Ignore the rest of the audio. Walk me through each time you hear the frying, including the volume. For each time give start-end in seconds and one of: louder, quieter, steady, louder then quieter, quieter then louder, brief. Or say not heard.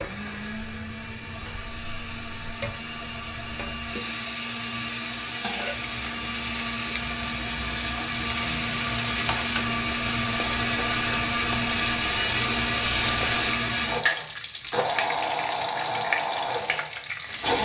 0.0-17.5 louder.